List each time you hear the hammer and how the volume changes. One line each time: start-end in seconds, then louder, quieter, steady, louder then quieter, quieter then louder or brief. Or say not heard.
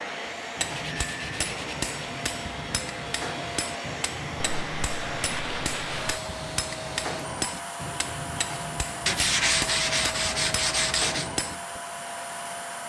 0.6-11.8 steady.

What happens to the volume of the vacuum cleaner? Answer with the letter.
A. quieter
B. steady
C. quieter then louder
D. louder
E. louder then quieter
B.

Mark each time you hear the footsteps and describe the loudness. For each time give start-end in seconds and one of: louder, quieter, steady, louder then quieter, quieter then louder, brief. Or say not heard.
not heard.